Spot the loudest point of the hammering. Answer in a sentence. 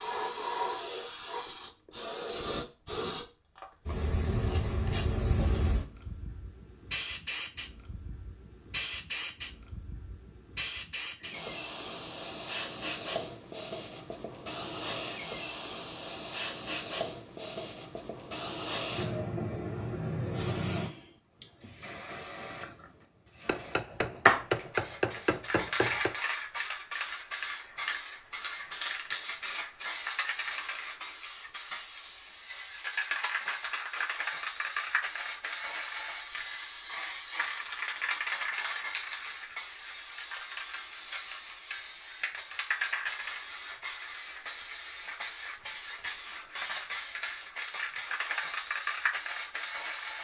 The loudest moment of the hammering is at 25 seconds.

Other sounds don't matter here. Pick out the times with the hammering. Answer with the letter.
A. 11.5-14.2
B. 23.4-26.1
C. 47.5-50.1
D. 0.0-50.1
B.